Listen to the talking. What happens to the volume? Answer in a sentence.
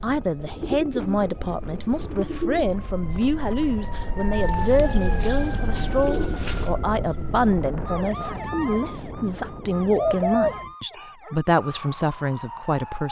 The volume of the talking stays about the same.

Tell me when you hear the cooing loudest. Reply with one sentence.
The volume of the cooing peaks at 10 seconds.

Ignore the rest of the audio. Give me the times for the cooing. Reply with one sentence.
The cooing can be heard from 0.4 to 2.7 s, from 4.4 to 6.7 s and from 9.9 to 11.1 s.